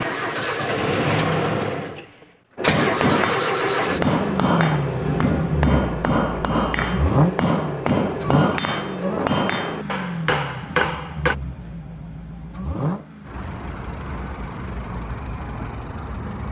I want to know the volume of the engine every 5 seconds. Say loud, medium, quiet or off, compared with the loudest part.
loud, loud, medium, medium.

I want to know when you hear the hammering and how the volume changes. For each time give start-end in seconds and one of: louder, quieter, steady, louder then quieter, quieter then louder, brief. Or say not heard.
2.5-11.3 steady.